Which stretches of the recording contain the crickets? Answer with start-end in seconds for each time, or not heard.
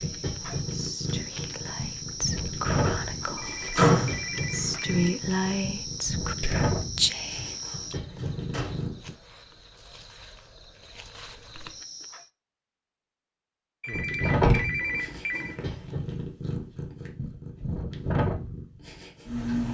0.0-12.3.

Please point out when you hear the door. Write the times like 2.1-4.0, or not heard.
2.8-4.7, 7.3-8.9, 14.3-15.9.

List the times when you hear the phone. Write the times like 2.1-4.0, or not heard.
3.4-5.2, 13.8-15.6.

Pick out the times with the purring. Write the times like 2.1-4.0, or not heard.
0.0-9.1, 13.9-19.6.